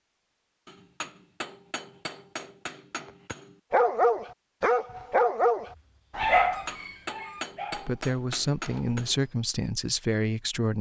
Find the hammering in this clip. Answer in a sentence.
The hammering can be heard from 0.7 to 3.5 s and from 6.5 to 9.2 s.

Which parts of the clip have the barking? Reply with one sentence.
You can hear the barking from 3.7 to 9.3 s.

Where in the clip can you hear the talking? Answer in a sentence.
The talking can be heard from 7.7 to 10.7 s.